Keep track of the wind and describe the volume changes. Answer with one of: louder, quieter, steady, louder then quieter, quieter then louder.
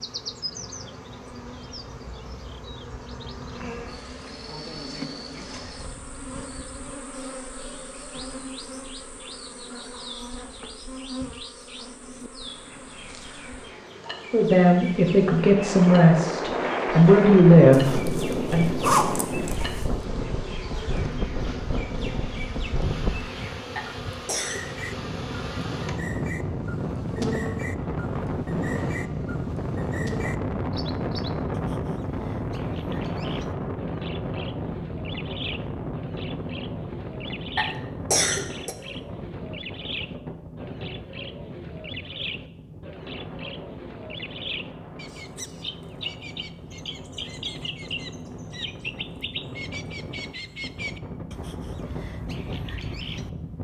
quieter.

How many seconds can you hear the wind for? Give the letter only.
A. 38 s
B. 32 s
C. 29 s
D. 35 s
A.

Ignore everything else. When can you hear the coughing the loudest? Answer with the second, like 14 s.
38 s.